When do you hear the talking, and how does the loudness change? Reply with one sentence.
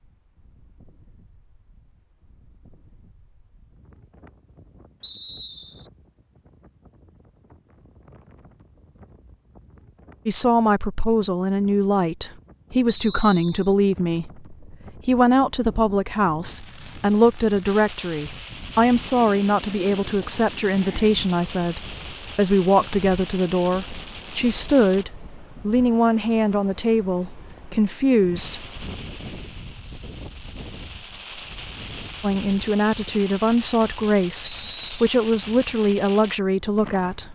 You can hear the talking from 10.2 to 28.7 s, at a steady volume; and from 32.2 to 37.3 s, at a steady volume.